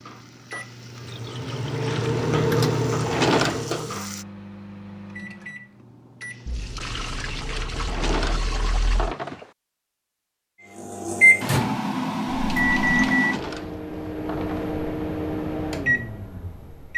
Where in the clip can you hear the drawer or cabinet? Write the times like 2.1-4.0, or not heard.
2.9-3.7, 7.8-9.5, 13.1-14.8.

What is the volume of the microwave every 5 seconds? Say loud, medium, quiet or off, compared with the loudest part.
medium, quiet, loud, medium.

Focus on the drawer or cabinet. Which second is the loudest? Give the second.
3 s.